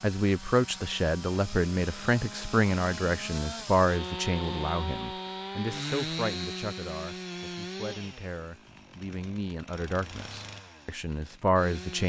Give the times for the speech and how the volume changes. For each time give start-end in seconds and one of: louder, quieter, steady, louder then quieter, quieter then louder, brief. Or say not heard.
0.0-12.0 quieter then louder.